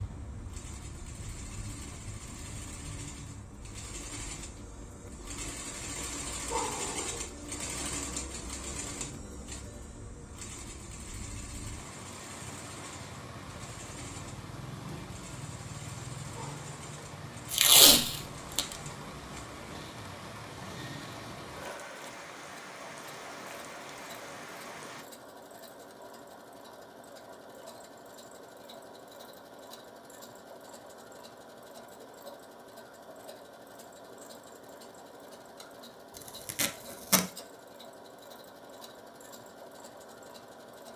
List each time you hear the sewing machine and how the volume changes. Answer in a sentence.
The sewing machine can be heard from 0.0 to 40.9 s, getting quieter.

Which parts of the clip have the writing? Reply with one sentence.
The writing can't be heard in this clip.